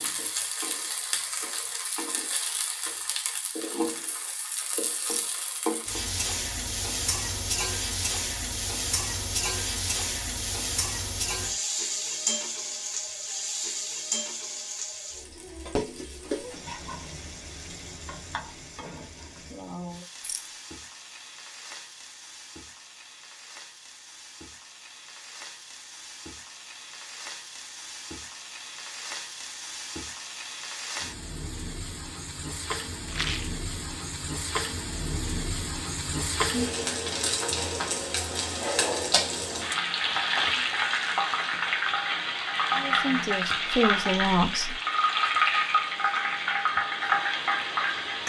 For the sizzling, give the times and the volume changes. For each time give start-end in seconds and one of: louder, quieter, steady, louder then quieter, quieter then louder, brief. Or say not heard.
0.0-48.2 quieter then louder.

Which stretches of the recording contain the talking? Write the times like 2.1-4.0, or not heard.
42.7-44.8.